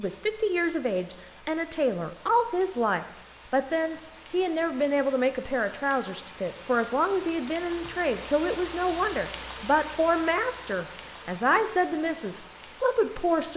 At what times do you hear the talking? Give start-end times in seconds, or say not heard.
0.0-13.5.